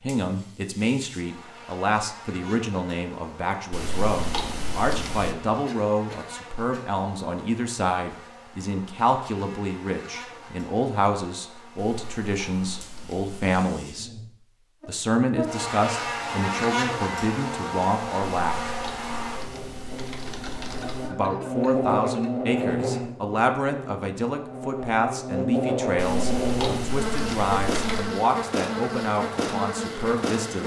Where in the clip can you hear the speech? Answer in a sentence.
The speech can be heard from 0.0 to 14.1 s, from 14.8 to 18.7 s and from 21.1 to 30.6 s.